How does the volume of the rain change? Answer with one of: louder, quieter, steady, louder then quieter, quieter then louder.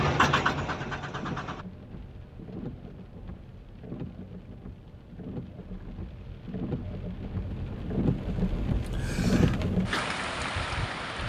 louder.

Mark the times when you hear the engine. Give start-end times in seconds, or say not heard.
0.0-1.6.